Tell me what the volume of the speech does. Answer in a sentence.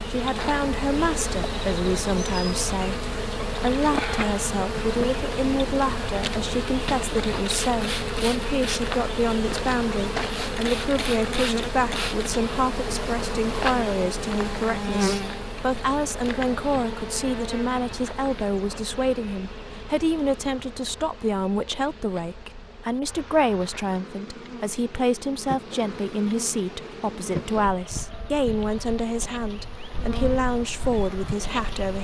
The volume of the speech stays about the same.